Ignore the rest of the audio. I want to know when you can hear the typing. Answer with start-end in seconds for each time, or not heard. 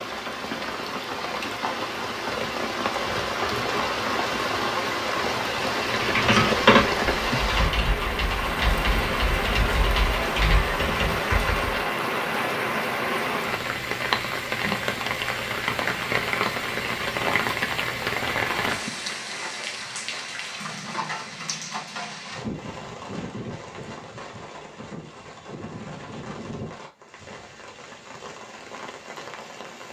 5.8-11.8.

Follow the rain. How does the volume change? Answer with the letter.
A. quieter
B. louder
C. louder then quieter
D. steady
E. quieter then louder
A.